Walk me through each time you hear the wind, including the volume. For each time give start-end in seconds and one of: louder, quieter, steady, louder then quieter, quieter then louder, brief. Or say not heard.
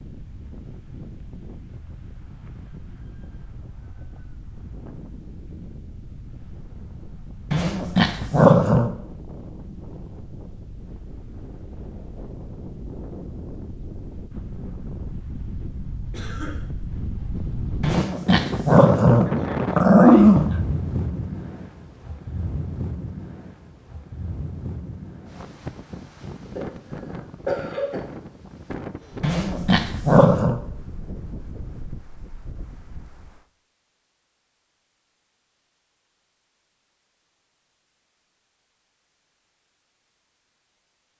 0.0-33.5 louder then quieter.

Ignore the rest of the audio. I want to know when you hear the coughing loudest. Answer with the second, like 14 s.
28 s.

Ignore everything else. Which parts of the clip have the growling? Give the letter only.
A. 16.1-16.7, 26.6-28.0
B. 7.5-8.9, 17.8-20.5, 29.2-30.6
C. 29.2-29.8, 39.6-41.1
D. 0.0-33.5
B.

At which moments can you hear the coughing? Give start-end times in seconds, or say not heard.
16.1-16.7, 26.6-28.0.